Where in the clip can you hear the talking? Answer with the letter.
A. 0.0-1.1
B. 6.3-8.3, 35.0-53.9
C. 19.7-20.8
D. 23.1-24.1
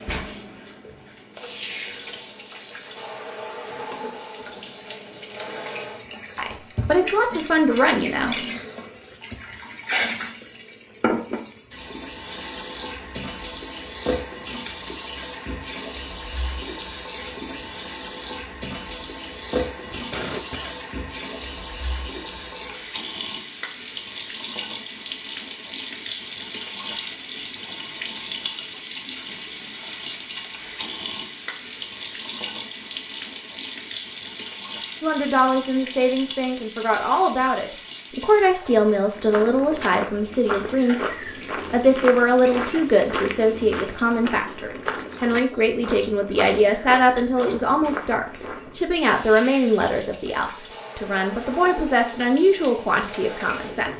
B.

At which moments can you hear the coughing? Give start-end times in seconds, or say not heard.
19.7-20.8.